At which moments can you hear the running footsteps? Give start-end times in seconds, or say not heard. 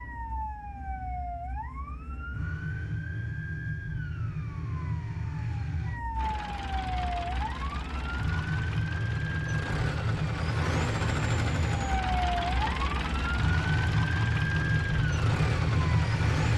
not heard.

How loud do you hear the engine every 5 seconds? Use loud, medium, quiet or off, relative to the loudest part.
off, medium, loud, loud.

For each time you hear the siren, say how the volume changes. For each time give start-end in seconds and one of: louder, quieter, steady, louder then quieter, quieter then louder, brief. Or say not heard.
0.0-16.5 louder.